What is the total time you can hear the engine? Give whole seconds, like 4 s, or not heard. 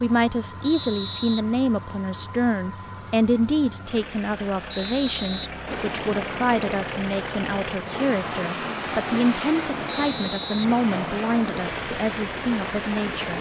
13 s.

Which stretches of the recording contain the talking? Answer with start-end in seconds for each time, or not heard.
0.0-13.3.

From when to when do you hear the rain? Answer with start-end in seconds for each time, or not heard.
5.7-13.3.